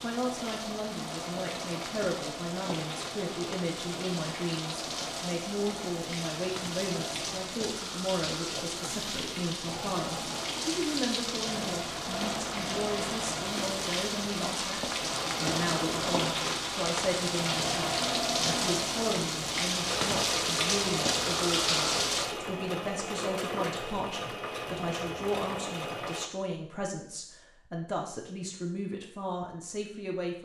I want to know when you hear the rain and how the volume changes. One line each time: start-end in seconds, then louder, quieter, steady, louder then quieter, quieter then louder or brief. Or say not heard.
0.0-22.4 louder.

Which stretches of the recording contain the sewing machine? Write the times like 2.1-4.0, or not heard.
0.0-26.3.